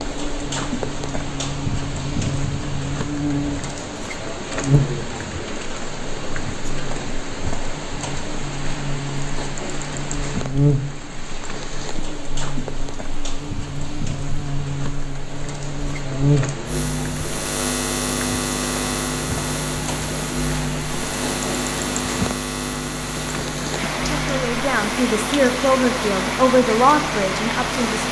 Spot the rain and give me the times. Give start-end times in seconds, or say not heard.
0.0-28.0.